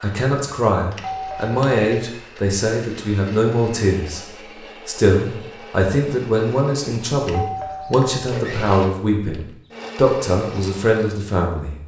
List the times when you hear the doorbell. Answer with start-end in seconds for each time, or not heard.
0.9-1.9, 7.2-8.3.